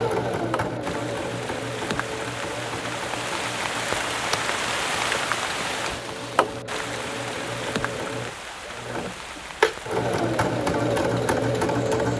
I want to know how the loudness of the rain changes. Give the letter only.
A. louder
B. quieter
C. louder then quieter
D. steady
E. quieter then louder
C.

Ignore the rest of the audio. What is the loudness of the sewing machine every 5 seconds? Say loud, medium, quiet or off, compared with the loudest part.
medium, medium, loud.